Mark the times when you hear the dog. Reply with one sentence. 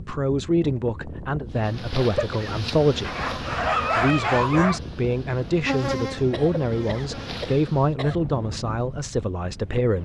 You can hear the dog from 3.0 to 4.8 s.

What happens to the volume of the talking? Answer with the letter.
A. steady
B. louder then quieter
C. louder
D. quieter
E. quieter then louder
A.